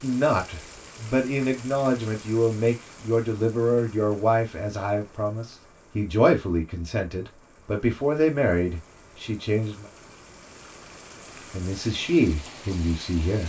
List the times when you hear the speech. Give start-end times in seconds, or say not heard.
0.0-9.8, 11.5-13.4.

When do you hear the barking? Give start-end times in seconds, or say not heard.
not heard.